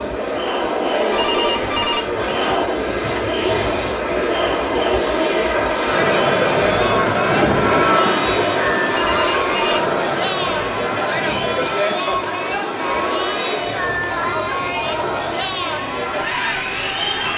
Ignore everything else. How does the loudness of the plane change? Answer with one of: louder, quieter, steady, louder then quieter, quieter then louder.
louder then quieter.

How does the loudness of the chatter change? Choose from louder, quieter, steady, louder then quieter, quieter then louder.
steady.